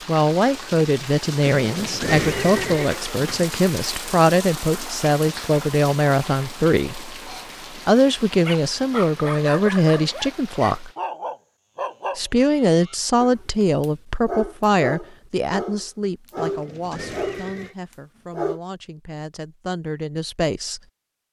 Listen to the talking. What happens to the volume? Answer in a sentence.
The loudness of the talking goes down.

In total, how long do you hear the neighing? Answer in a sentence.
You can hear the neighing for 3 seconds altogether.